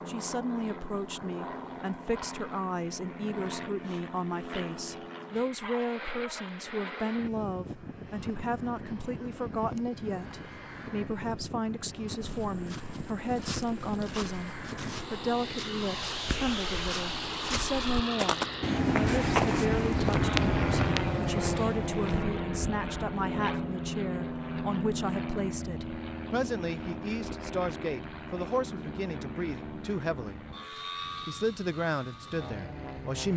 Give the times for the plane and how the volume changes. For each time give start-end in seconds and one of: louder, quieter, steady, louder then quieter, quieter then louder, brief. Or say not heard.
0.0-33.3 louder then quieter.